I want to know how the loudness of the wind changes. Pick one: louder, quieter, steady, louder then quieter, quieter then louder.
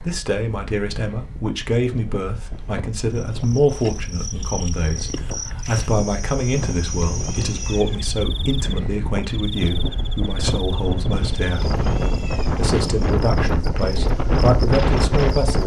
louder.